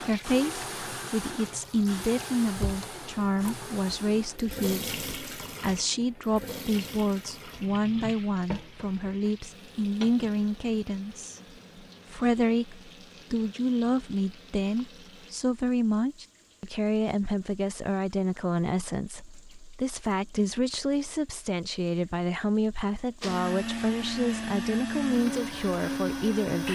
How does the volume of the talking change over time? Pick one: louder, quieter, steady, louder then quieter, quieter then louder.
steady.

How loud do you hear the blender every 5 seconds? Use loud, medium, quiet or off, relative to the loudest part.
medium, off, off, off, loud, loud.